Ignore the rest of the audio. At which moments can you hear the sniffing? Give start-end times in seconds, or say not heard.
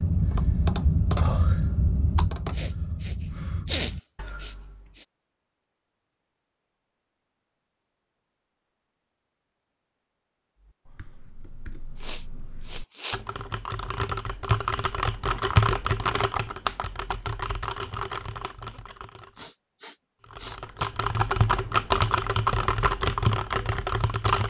2.5-5.0, 11.9-13.2, 19.4-21.3.